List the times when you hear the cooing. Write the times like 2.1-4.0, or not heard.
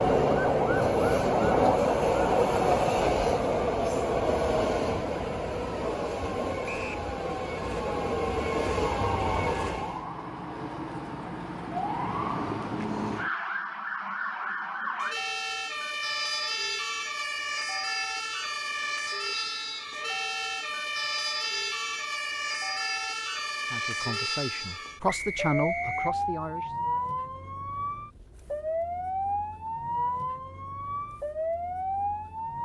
not heard.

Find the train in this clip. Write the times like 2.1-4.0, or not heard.
0.0-10.1.